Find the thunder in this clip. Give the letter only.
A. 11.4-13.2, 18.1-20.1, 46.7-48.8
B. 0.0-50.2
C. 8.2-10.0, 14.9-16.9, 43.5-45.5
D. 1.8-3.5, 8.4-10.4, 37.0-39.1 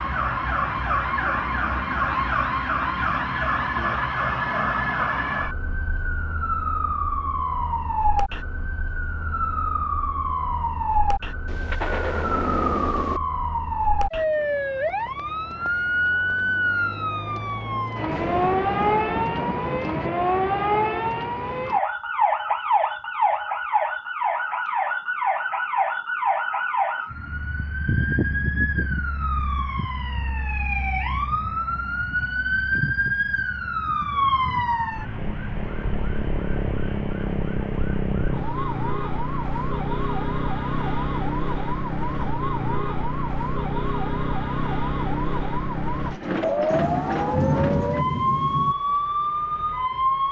A.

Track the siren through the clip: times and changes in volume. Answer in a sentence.
The siren can be heard from 0.0 to 50.2 s, at a steady volume.